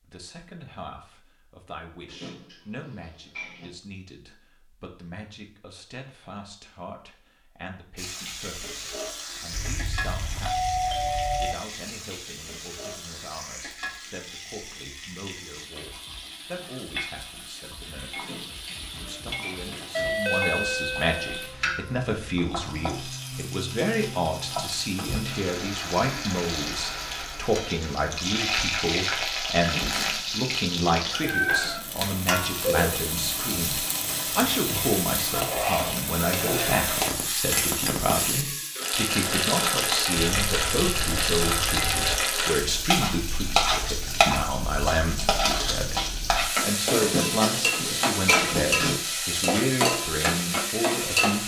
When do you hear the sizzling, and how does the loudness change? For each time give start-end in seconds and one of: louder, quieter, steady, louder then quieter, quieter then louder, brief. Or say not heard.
8.0-51.4 louder.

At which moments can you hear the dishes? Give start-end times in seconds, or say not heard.
2.0-3.7, 18.1-20.1, 47.0-49.0.